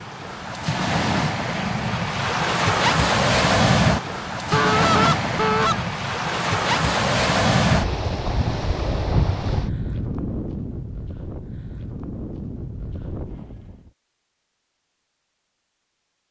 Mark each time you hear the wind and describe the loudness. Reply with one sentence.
You can hear the wind from 0.0 to 13.9 s, getting quieter.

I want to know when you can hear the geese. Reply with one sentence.
The geese can be heard from 4.5 to 5.8 s.